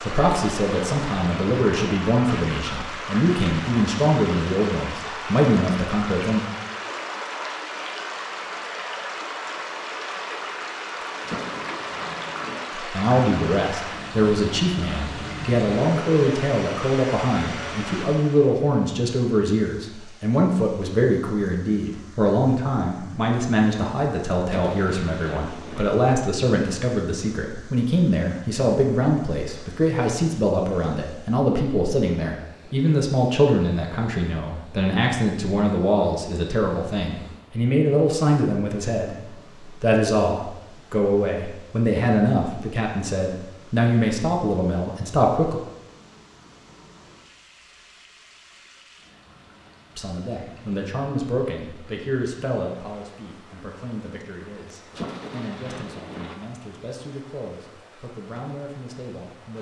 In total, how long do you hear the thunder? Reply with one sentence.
You can hear the thunder for 5 seconds altogether.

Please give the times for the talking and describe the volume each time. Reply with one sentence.
The talking can be heard from 0.0 to 6.5 s, at a steady volume; from 12.8 to 45.6 s, at a steady volume; and from 50.0 to 59.5 s, getting quieter.